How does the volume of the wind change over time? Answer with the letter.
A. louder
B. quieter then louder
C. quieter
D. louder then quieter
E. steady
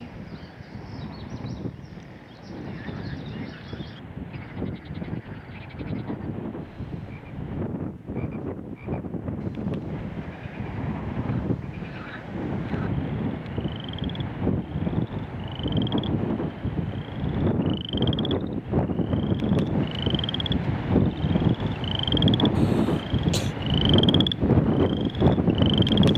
A.